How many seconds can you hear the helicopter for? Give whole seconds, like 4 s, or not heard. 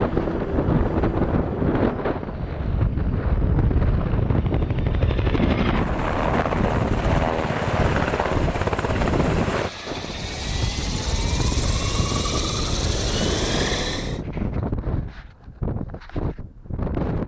14 s.